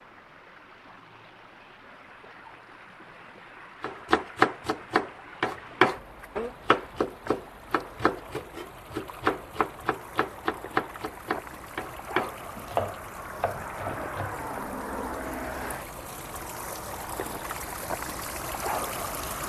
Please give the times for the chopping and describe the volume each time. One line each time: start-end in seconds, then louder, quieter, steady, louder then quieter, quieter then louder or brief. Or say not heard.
3.8-14.3 quieter.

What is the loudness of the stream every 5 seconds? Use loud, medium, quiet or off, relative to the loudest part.
quiet, medium, loud, loud.